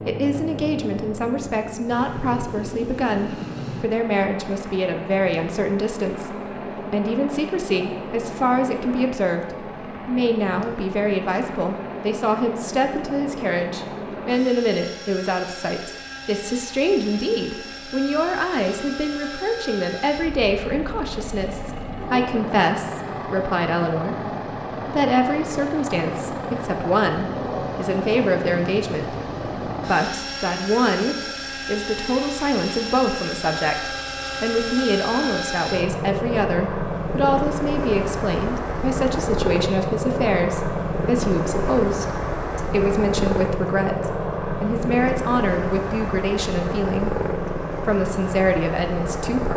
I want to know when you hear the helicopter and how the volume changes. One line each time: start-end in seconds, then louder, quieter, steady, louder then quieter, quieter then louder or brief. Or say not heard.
0.0-49.5 louder.